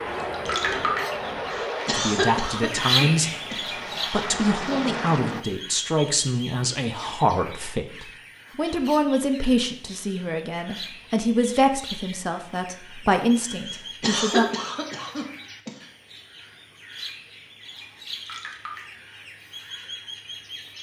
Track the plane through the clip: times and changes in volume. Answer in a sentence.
The plane can be heard from 0.0 to 5.5 s, getting quieter then louder.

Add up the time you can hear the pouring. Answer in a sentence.
You can hear the pouring for 2 seconds altogether.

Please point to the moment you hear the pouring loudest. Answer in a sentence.
The volume of the pouring peaks at 1 second.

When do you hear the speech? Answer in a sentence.
The speech can be heard from 1.9 to 14.4 s.